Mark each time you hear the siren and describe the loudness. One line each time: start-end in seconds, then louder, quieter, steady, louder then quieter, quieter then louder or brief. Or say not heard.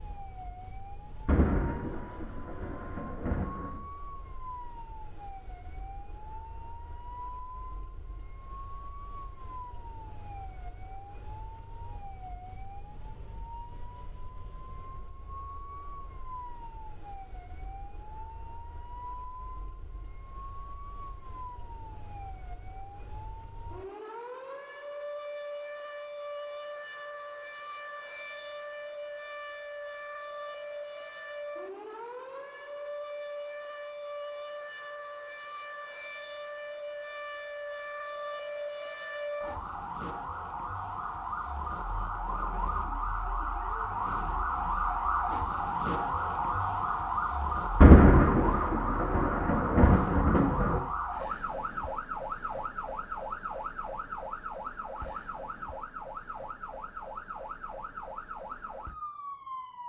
0.0-59.8 louder.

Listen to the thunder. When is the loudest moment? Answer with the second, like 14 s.
48 s.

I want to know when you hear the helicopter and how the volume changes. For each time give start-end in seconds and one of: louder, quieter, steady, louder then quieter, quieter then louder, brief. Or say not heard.
not heard.